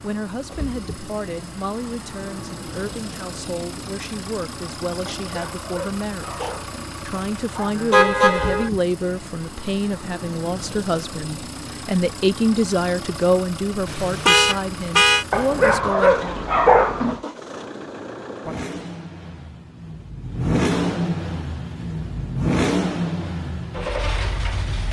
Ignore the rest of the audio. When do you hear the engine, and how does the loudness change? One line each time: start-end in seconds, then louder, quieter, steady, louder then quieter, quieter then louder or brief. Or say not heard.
0.0-24.8 louder.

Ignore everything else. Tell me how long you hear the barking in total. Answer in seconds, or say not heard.
5 s.